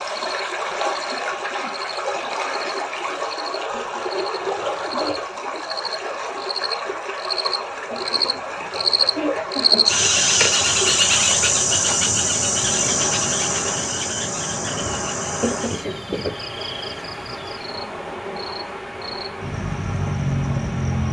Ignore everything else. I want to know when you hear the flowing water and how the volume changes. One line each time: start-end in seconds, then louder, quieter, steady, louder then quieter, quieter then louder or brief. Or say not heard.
0.0-21.0 quieter.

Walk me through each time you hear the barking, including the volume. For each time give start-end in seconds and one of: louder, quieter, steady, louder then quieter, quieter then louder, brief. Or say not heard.
not heard.